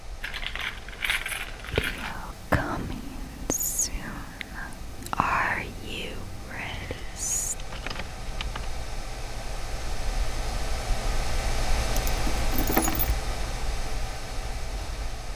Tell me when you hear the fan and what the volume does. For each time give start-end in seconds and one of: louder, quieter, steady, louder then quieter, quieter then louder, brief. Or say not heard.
0.0-15.3 louder.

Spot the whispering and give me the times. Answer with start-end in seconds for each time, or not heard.
1.7-7.5.